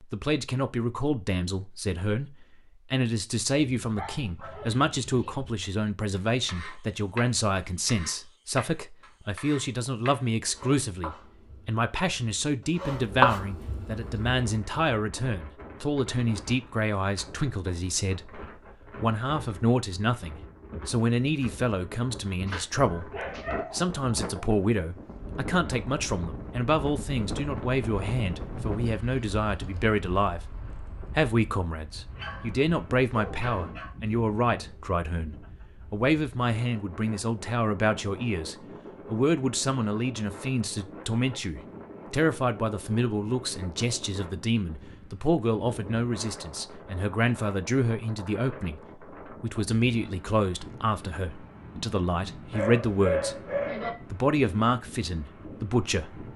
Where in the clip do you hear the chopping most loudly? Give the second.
13 s.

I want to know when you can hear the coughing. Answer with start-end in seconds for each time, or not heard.
not heard.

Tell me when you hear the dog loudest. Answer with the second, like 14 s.
53 s.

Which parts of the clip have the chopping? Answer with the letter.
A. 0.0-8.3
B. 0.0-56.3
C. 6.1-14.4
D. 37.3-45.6
C.